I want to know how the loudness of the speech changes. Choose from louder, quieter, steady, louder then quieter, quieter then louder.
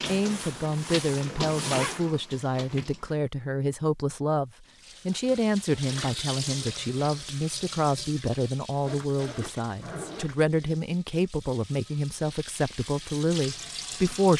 steady.